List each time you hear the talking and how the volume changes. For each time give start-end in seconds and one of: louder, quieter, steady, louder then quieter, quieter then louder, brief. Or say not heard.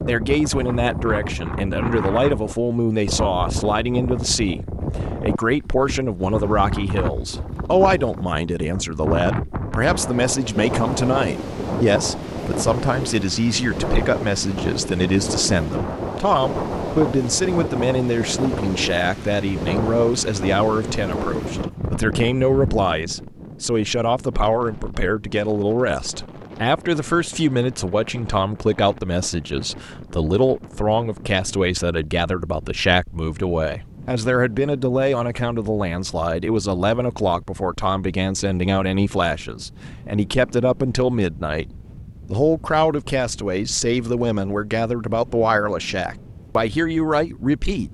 0.1-47.8 steady.